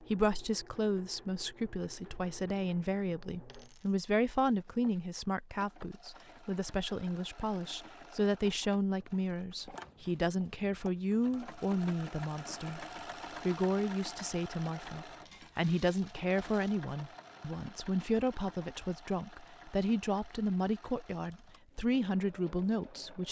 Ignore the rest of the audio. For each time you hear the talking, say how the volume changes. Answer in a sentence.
The talking can be heard from 0.0 to 23.2 s, at a steady volume.